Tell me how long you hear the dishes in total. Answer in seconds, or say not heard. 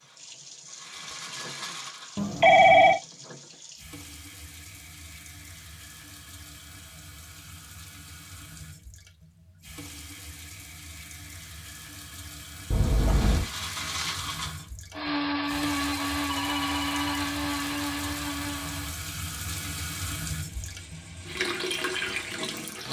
not heard.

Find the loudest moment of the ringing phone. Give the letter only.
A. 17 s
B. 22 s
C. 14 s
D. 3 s
D.